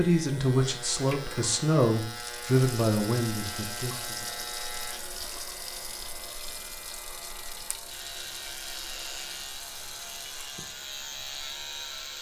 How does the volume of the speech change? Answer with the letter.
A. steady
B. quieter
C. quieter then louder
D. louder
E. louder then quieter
B.